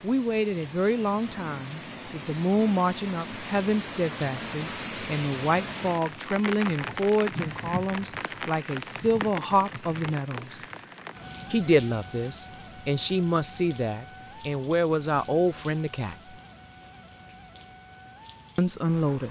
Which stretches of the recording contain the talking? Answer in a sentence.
The talking can be heard from 0.0 to 10.6 s, from 11.5 to 16.1 s and from 18.6 to 19.2 s.